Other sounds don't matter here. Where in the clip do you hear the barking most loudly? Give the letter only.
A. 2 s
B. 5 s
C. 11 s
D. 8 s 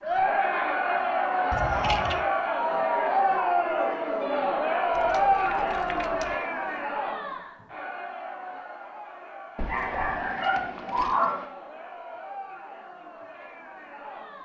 C.